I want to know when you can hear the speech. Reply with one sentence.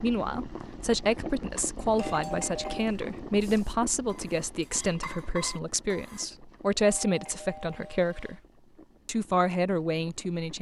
The speech can be heard from 0.0 to 8.4 s and from 9.1 to 10.5 s.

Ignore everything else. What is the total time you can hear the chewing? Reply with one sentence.
You can't hear the chewing here.